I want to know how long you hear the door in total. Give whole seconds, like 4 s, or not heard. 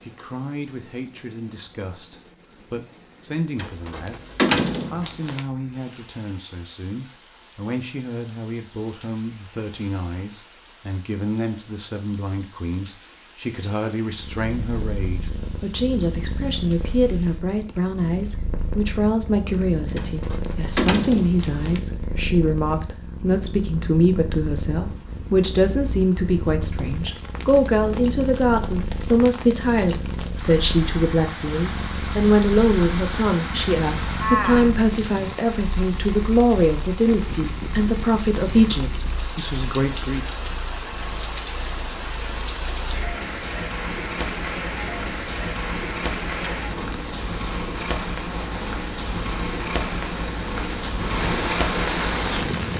4 s.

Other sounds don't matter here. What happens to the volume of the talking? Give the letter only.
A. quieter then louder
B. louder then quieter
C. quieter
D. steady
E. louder
E.